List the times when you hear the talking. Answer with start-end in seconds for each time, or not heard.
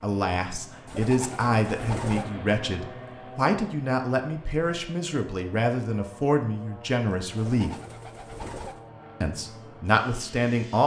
0.0-7.8, 9.2-10.8.